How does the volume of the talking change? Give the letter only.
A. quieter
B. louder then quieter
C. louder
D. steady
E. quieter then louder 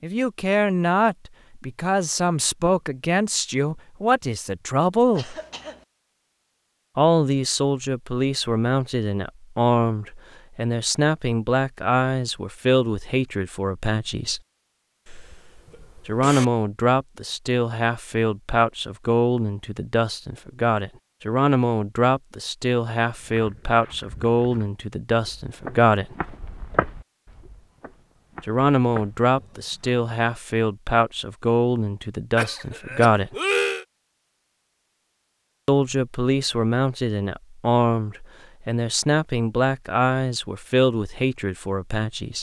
D.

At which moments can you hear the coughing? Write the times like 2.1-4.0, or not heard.
5.2-5.8, 15.1-16.4, 32.4-33.9.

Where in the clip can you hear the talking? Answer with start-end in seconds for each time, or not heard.
0.0-5.3, 7.0-14.4, 16.1-26.1, 28.4-33.4, 35.6-42.3.